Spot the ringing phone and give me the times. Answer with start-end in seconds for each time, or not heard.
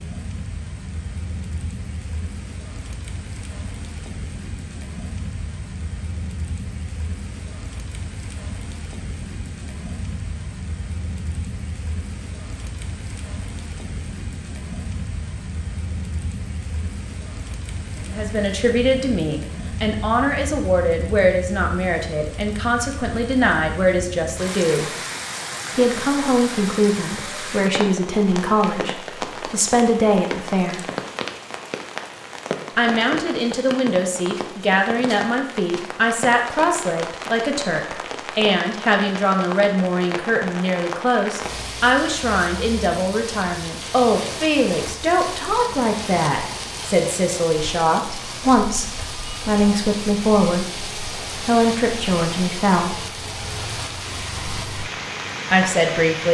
not heard.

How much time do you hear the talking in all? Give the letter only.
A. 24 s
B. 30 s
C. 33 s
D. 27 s
C.